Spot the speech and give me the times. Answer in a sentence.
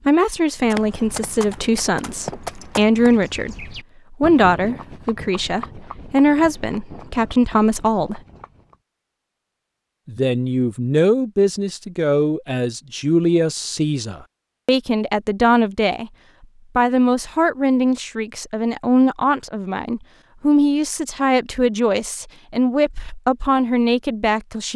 You can hear the speech from 0.1 to 8.2 s, from 10.1 to 16.1 s and from 16.8 to 24.7 s.